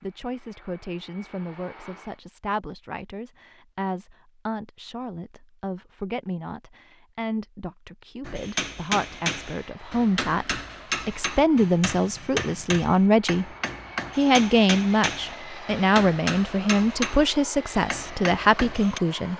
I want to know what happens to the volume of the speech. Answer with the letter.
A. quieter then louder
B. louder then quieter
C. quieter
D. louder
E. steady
D.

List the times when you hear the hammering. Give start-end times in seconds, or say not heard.
8.2-17.2, 17.9-19.0.